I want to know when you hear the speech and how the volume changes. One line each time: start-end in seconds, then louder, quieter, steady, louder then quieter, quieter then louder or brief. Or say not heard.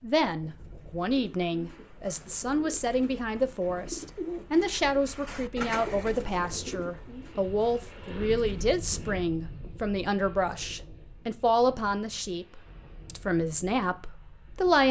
0.0-14.8 steady.